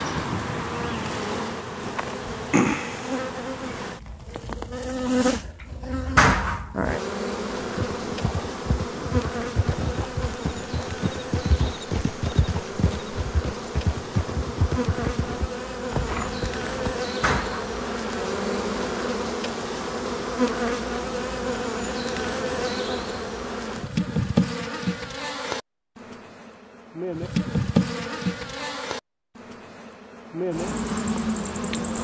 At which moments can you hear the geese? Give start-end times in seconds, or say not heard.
not heard.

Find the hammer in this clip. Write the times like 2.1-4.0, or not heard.
not heard.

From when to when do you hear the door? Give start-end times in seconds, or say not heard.
6.2-6.8, 17.2-17.8.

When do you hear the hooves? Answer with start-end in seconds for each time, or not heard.
7.5-16.9.